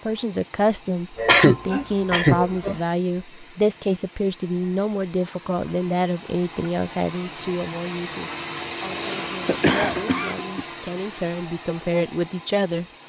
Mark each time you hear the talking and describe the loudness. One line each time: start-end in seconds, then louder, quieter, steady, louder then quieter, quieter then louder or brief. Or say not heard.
0.1-12.8 quieter then louder.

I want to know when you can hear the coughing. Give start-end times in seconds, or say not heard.
1.1-2.8, 8.8-10.7.